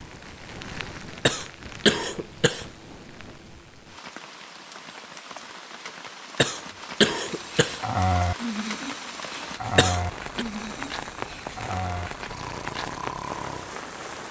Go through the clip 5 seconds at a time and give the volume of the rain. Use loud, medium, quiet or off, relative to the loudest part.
medium, loud, loud.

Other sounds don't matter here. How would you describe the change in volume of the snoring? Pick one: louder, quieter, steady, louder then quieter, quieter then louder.
quieter.